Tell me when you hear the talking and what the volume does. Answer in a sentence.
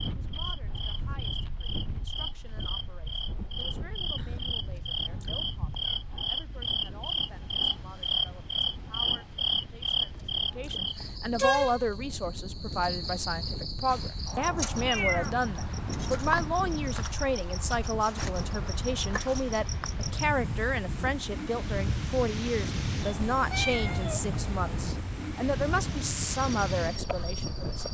The talking can be heard from 0.1 to 27.8 s, getting louder.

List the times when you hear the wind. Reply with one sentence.
The wind can be heard from 0.0 to 27.8 s.